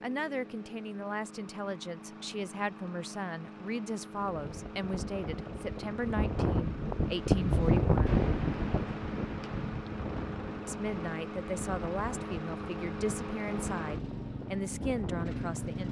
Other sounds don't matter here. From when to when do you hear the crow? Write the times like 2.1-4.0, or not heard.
not heard.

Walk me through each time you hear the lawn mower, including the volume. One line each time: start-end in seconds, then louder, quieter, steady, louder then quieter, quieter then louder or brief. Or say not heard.
0.0-15.8 louder.